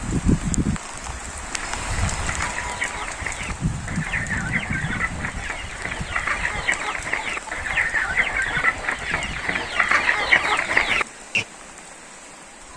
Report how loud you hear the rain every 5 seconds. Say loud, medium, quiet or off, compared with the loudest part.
loud, medium, quiet.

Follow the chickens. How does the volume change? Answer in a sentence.
The volume of the chickens goes up.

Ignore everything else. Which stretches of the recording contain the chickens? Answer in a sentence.
You can hear the chickens from 1.5 to 11.4 s.